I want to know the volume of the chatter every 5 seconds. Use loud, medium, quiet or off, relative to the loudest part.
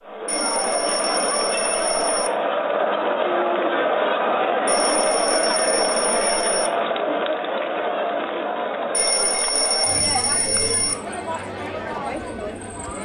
loud, loud, medium.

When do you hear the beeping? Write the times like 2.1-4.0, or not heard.
0.2-2.3, 4.7-6.7, 8.9-10.9.